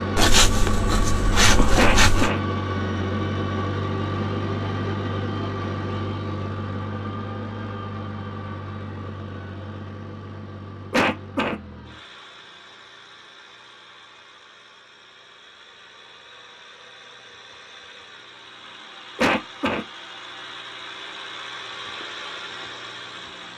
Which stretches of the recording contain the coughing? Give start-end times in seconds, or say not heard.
1.8-2.4, 10.9-11.6, 19.1-19.9.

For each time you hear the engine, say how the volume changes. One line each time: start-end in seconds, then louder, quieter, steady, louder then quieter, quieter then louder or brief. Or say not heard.
0.0-23.5 quieter then louder.